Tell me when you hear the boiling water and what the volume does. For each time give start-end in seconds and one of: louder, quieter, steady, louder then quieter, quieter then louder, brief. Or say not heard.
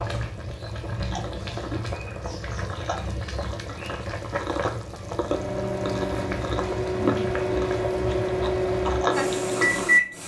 0.0-10.2 steady.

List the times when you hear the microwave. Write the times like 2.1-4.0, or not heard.
5.0-10.2.